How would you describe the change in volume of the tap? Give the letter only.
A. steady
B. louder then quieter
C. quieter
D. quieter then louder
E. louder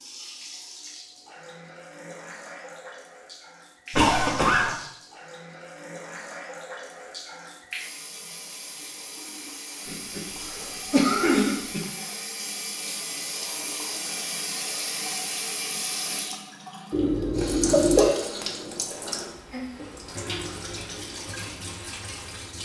E.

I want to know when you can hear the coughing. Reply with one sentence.
The coughing can be heard from 3.9 to 4.8 s, from 9.8 to 11.8 s and from 16.9 to 18.1 s.